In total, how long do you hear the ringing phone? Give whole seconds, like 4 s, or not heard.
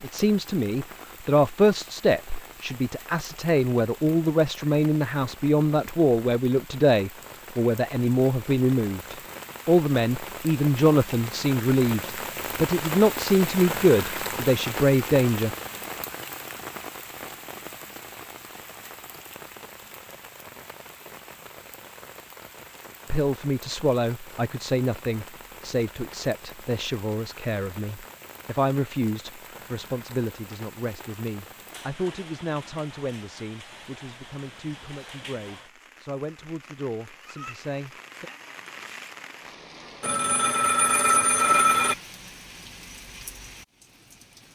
2 s.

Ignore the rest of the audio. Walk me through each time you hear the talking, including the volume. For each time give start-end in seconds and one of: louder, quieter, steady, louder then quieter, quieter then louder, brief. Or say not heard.
0.0-15.5 steady
23.1-38.3 quieter.